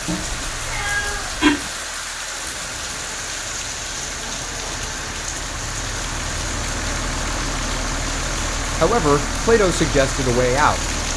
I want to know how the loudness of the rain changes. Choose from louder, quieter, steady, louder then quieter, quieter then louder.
steady.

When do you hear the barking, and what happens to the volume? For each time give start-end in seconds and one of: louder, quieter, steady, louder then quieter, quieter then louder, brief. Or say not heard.
not heard.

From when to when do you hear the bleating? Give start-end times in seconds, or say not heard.
not heard.